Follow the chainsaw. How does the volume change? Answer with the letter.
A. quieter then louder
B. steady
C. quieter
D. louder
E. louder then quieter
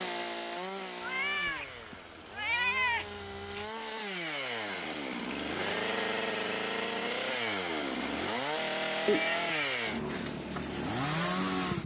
D.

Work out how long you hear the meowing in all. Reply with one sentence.
The meowing can be heard for 3 seconds in total.